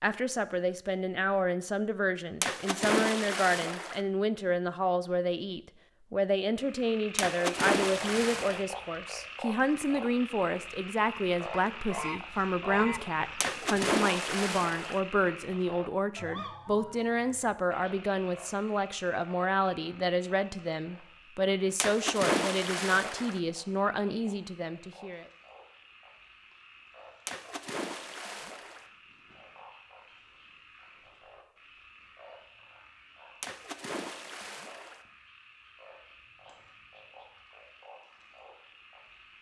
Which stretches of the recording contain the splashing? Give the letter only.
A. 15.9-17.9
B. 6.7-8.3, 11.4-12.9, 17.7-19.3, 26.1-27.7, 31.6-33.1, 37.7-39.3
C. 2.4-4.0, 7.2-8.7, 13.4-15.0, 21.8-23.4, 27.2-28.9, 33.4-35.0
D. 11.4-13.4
C.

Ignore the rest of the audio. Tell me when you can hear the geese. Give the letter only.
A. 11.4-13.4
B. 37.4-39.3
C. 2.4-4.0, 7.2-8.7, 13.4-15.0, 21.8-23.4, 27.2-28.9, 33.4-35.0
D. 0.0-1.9
A.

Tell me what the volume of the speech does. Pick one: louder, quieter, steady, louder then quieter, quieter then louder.
steady.